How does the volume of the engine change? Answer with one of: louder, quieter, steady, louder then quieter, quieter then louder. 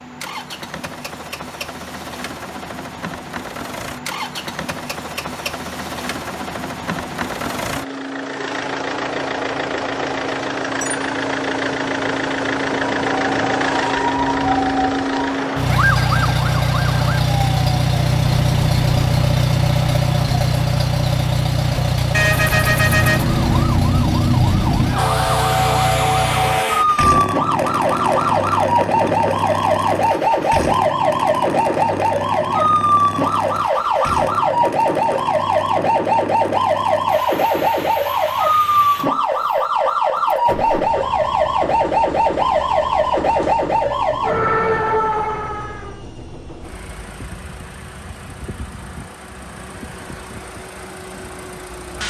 louder then quieter.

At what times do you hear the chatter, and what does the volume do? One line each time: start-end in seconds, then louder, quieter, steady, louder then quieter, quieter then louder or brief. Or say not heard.
not heard.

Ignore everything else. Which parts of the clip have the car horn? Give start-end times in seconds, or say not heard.
22.1-23.6.